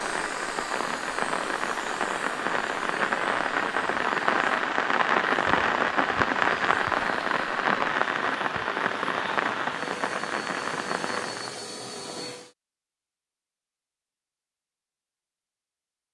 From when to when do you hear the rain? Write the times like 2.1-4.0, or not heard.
0.0-11.7.